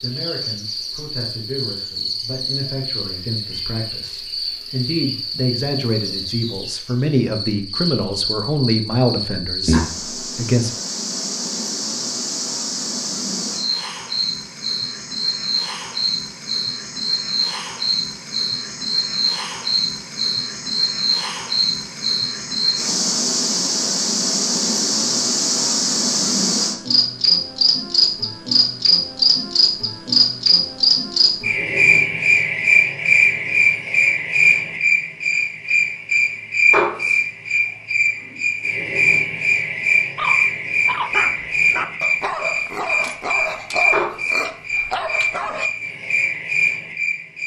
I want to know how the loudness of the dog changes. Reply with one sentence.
The loudness of the dog stays about the same.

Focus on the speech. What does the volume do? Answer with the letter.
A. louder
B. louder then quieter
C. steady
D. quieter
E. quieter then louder
A.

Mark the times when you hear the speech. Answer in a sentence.
The speech can be heard from 0.0 to 10.7 s.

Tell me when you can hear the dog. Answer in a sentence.
The dog can be heard from 40.1 to 45.7 s.